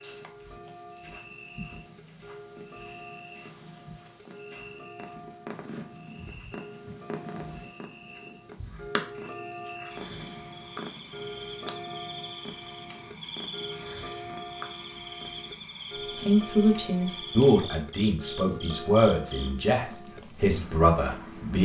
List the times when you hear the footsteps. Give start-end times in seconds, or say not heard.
not heard.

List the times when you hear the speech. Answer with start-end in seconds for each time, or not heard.
16.1-21.6.